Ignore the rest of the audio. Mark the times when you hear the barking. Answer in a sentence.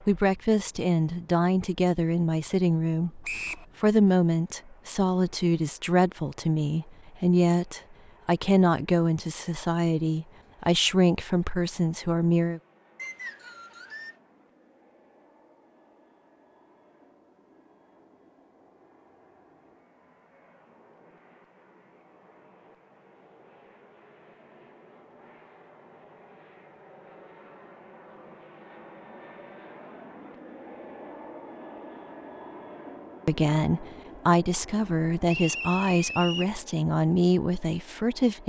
The barking can't be heard in this clip.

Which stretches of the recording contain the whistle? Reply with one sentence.
You can hear the whistle from 3.2 to 3.6 s, from 12.9 to 14.2 s and from 35.2 to 36.5 s.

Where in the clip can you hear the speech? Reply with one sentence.
You can hear the speech from 0.1 to 12.6 s and from 33.2 to 38.4 s.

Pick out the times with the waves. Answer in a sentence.
You can't hear the waves here.